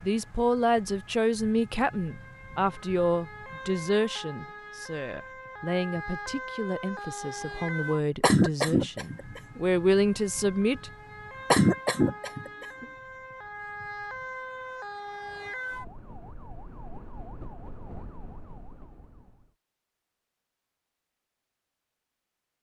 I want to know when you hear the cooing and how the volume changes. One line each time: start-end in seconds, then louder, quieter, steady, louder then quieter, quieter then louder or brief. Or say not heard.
not heard.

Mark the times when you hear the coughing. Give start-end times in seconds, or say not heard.
8.2-9.6, 11.5-12.8.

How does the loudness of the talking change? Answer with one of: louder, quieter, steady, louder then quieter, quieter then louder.
quieter then louder.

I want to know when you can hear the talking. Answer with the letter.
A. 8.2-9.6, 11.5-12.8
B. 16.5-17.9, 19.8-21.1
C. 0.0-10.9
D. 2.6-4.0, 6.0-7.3
C.